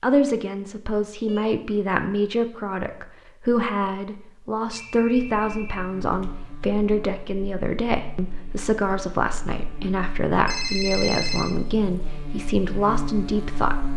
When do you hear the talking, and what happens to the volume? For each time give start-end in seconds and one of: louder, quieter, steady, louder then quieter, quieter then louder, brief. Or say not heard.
0.0-13.8 steady.